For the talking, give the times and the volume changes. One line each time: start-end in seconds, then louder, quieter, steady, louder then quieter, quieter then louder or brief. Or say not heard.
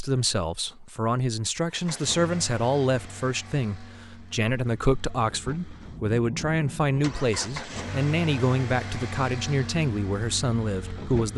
0.0-11.3 steady.